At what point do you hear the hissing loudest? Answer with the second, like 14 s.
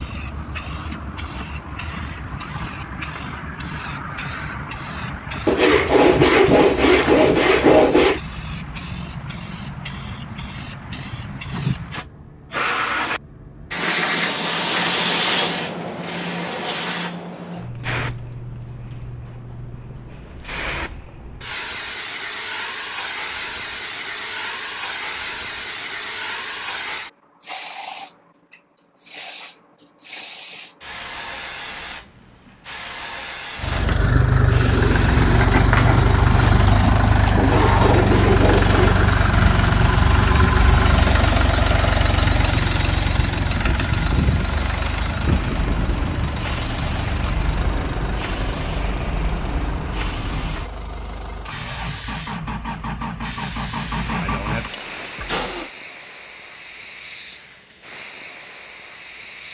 15 s.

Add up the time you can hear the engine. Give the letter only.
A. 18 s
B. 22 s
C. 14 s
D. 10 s
B.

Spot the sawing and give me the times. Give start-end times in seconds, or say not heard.
5.5-8.2, 37.4-39.1.